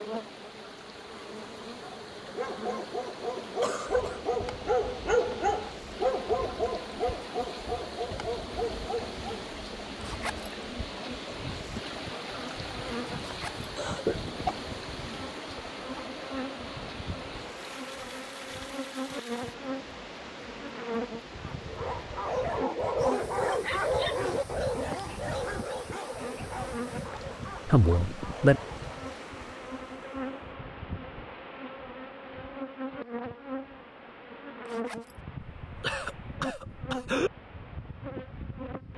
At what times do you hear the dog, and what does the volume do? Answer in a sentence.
You can hear the dog from 1.8 to 9.2 s, getting louder then quieter; and from 21.4 to 29.0 s, getting quieter.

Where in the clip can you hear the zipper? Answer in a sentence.
The zipper can be heard from 10.0 to 10.5 s, from 13.2 to 13.7 s and from 34.6 to 35.1 s.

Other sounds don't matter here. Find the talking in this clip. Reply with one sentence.
The talking can be heard from 27.6 to 28.6 s.